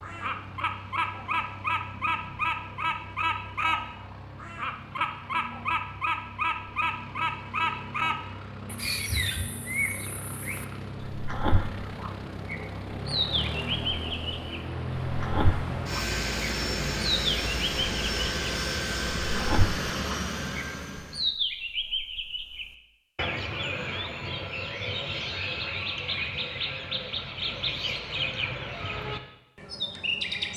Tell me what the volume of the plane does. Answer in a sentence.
The loudness of the plane goes up.